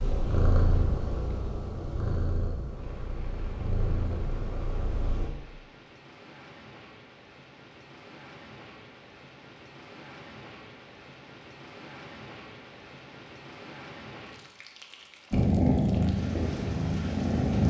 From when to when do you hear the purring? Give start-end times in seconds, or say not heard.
0.0-5.3, 15.3-17.6.